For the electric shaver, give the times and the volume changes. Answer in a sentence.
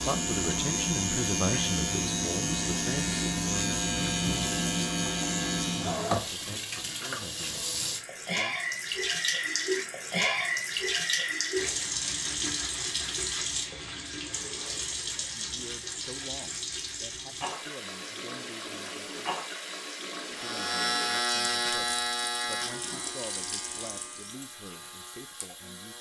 You can hear the electric shaver from 0.0 to 6.2 s, at a steady volume; and from 20.3 to 25.9 s, getting quieter.